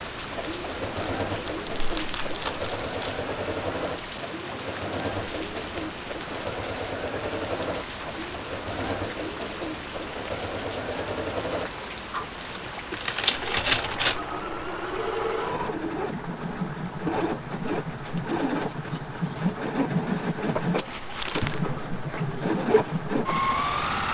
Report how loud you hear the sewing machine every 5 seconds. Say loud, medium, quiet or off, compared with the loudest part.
medium, medium, medium, loud, loud.